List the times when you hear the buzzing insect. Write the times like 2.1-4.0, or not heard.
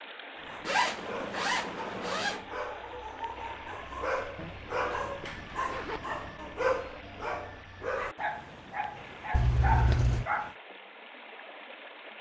not heard.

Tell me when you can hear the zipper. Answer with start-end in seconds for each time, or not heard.
0.7-2.5, 4.3-6.1, 9.3-10.2.